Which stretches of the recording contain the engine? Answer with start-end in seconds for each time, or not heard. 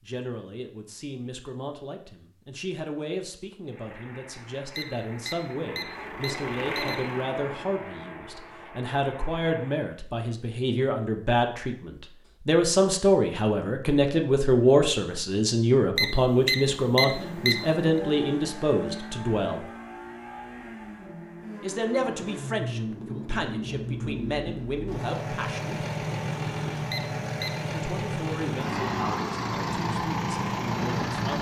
3.6-9.9, 16.9-31.3.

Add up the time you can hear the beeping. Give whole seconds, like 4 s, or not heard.
5 s.